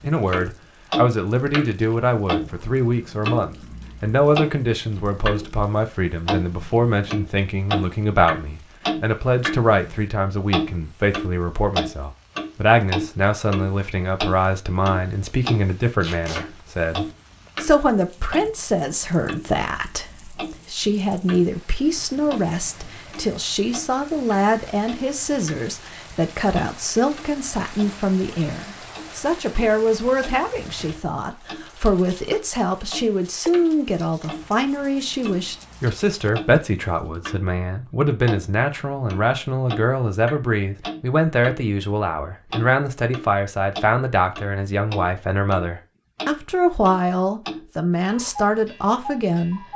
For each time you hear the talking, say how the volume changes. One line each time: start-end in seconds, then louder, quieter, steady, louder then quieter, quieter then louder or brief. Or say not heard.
0.0-49.6 steady.